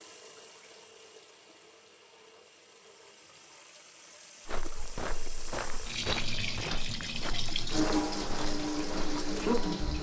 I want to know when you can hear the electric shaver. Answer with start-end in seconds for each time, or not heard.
not heard.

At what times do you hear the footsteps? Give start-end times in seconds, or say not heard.
4.5-9.9.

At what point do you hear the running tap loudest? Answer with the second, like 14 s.
8 s.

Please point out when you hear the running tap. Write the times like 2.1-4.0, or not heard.
0.0-9.9.